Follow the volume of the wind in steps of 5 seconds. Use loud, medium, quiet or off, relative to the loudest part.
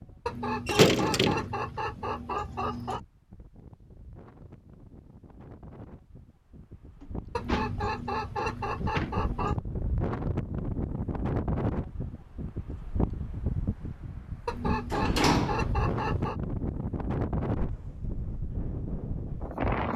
quiet, medium, loud, loud.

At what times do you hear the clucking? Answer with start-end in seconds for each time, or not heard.
0.2-3.0, 7.3-9.6, 14.4-16.4.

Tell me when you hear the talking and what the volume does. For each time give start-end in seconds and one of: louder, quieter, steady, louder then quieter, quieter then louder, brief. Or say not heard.
not heard.